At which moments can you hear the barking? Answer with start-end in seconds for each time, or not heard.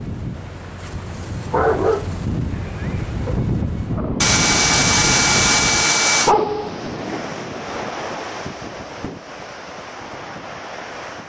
0.9-3.4, 6.2-7.2.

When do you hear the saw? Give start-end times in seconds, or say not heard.
4.2-6.3.